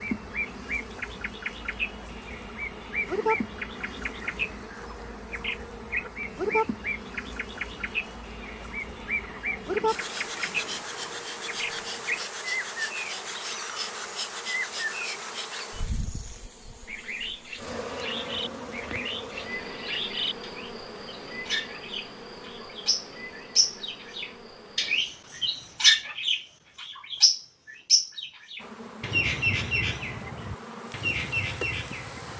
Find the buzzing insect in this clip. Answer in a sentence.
The buzzing insect can be heard from 0.0 to 25.0 s and from 28.6 to 32.3 s.